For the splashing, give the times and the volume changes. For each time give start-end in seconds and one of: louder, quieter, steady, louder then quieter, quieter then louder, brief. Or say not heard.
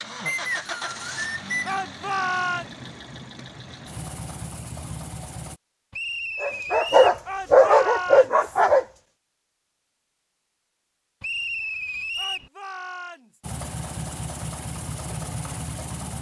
not heard.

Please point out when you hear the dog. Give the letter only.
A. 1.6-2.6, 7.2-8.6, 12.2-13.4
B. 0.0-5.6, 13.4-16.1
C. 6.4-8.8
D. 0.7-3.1
C.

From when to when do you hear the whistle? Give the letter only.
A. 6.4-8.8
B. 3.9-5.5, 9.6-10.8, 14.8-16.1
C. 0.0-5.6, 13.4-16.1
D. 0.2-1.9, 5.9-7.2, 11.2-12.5
D.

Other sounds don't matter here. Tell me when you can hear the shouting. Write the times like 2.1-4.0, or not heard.
1.6-2.6, 7.2-8.6, 12.2-13.4.